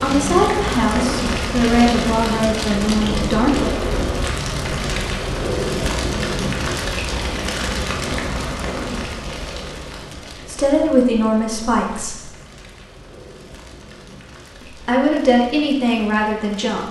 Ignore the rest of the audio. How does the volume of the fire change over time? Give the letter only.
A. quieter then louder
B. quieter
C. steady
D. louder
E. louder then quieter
B.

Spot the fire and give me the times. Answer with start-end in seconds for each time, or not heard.
0.0-16.8.